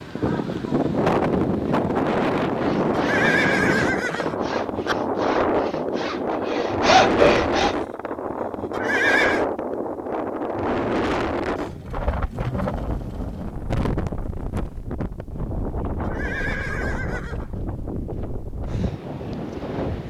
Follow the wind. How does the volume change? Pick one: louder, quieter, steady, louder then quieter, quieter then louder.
quieter.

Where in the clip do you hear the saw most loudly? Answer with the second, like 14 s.
7 s.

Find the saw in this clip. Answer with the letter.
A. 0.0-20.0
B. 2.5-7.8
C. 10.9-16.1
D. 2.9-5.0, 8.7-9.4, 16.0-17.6
B.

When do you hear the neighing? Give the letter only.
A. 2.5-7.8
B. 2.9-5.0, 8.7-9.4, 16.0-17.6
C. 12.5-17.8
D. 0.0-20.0
B.